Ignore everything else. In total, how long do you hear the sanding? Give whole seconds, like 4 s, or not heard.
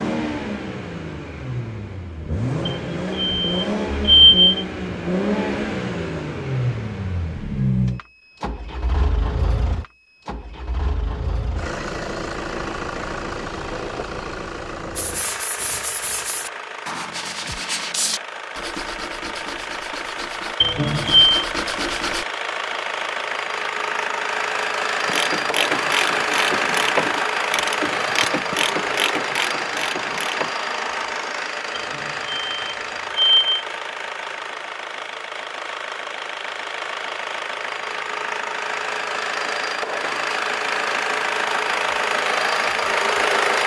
7 s.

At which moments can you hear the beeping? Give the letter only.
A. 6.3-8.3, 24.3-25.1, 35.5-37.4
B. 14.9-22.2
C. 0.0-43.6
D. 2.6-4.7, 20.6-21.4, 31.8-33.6
D.